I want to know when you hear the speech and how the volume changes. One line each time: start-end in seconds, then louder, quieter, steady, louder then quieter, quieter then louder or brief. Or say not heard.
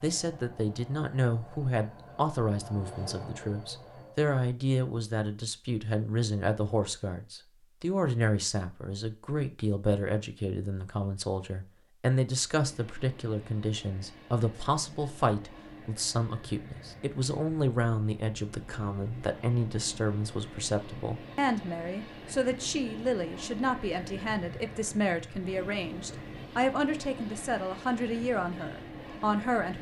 0.0-29.7 steady.